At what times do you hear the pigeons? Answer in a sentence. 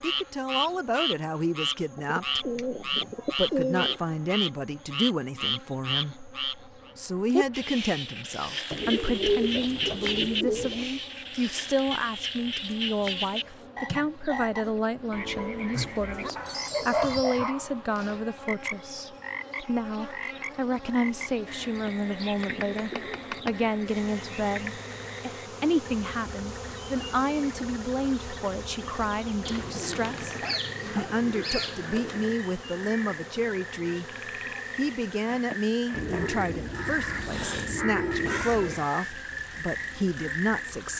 You can hear the pigeons from 1.9 to 4.0 s, from 8.7 to 10.9 s, from 15.7 to 17.4 s, from 22.4 to 23.6 s, from 29.4 to 32.4 s and from 35.9 to 38.9 s.